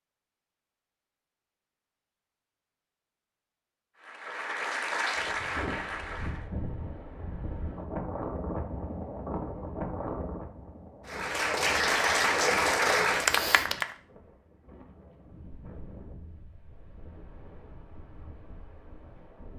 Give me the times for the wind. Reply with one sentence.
The wind can be heard from 5.1 to 19.5 s.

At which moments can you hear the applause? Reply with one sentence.
The applause can be heard from 4.0 to 6.5 s and from 11.1 to 13.9 s.